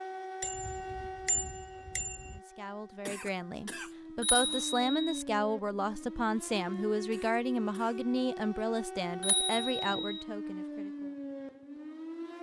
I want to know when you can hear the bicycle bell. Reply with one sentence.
You can hear the bicycle bell from 0.4 to 2.4 s, from 4.2 to 5.2 s and from 9.2 to 10.2 s.